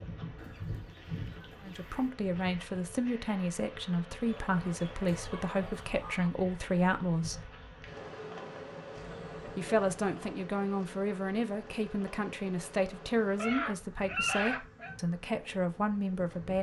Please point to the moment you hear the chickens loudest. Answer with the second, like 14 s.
14 s.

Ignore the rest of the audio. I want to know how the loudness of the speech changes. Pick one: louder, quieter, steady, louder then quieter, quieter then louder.
steady.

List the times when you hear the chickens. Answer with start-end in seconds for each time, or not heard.
0.3-2.1, 4.2-6.3, 8.9-10.3, 13.3-14.9.